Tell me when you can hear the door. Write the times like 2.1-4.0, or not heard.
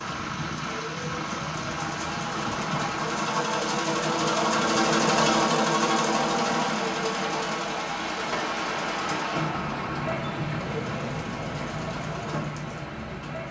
2.3-3.0, 8.3-10.2.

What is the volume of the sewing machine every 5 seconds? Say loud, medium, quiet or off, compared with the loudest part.
loud, loud, quiet.